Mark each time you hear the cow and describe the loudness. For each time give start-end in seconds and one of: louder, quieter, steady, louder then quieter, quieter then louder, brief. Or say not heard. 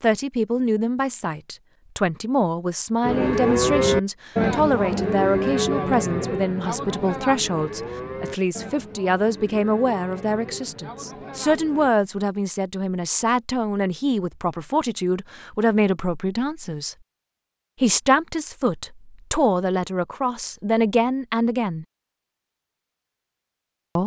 3.0-11.9 quieter.